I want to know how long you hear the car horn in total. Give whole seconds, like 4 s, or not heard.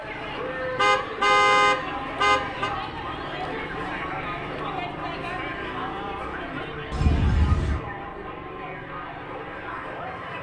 3 s.